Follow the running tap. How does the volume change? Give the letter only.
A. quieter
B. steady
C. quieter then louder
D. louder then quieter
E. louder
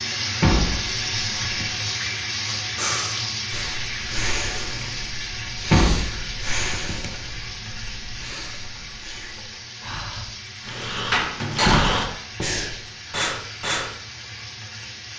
A.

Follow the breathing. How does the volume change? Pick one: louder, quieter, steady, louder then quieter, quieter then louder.
quieter then louder.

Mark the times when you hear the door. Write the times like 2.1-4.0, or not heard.
0.4-1.7, 5.7-7.2, 11.1-12.1.